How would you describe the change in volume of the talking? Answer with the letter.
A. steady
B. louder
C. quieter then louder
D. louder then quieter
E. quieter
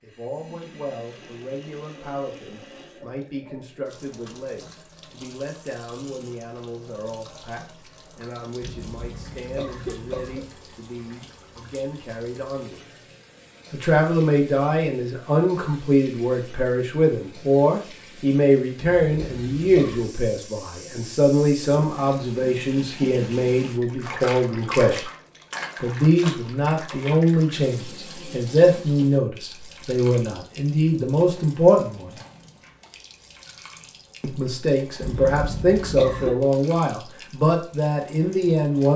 B.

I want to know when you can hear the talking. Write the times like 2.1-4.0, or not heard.
0.0-12.9, 13.7-25.1, 25.8-32.2, 34.2-38.9.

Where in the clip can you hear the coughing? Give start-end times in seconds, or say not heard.
8.6-10.5, 18.8-20.1, 35.0-36.4.